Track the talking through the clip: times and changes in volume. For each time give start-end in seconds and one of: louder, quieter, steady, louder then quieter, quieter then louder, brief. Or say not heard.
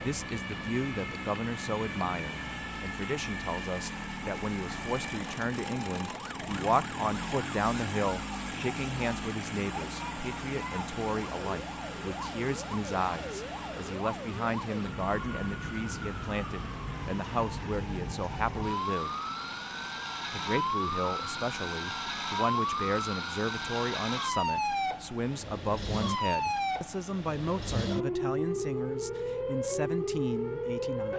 0.0-19.1 steady
20.3-31.1 steady.